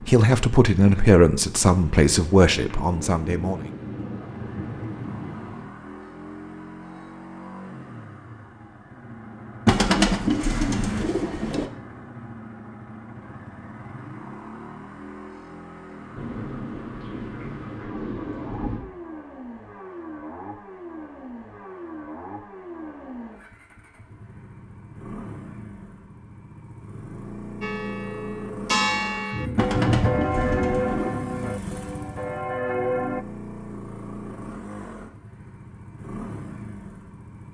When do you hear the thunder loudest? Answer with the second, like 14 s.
30 s.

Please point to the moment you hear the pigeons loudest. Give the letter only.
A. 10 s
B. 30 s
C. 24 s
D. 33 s
A.